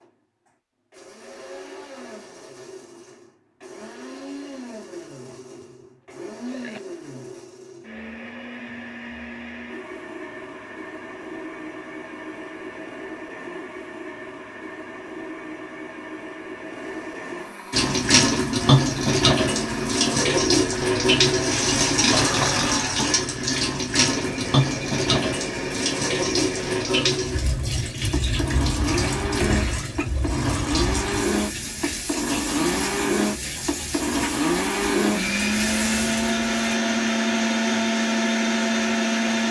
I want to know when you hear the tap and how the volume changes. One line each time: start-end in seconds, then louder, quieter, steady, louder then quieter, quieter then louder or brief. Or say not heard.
17.7-36.8 quieter.